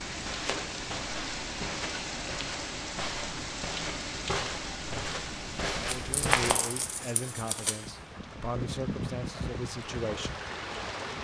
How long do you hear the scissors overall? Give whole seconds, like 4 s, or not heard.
2 s.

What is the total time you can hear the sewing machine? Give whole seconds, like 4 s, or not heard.
not heard.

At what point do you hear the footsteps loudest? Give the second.
6 s.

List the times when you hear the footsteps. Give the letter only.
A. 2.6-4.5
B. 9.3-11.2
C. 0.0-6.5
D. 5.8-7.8
C.